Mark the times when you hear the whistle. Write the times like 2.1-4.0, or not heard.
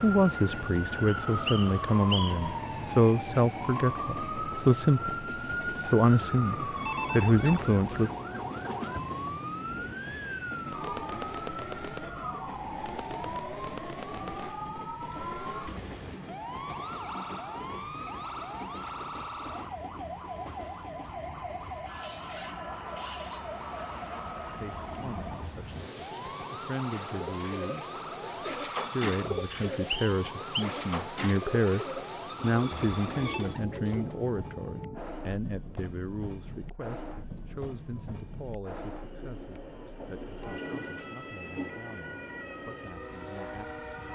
1.1-2.5, 29.7-30.6.